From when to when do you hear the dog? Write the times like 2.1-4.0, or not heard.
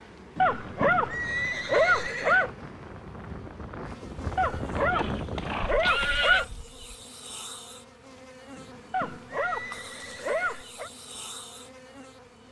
0.4-2.5, 4.3-6.5, 8.9-10.9.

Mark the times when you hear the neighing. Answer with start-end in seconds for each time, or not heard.
0.3-2.5, 4.9-6.5, 8.6-10.7.